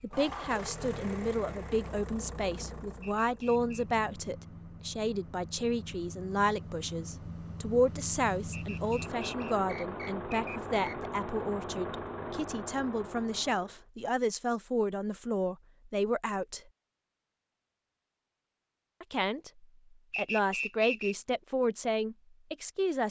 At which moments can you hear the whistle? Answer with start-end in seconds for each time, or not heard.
3.0-3.8, 8.5-11.1, 20.1-21.1.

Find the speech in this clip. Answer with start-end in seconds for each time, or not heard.
0.0-16.6, 19.0-23.0.